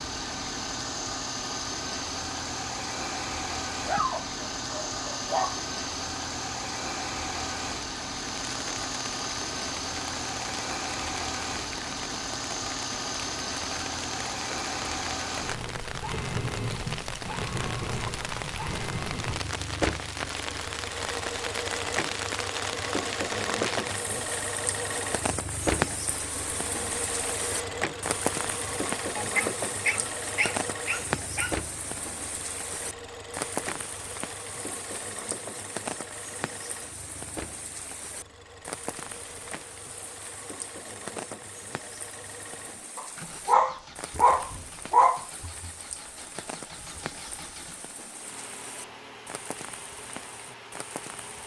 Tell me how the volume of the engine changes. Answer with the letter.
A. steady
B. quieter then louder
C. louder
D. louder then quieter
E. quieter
E.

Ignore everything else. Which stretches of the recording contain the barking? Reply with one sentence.
The barking can be heard from 3.9 to 5.6 s, from 29.1 to 31.6 s and from 43.0 to 45.2 s.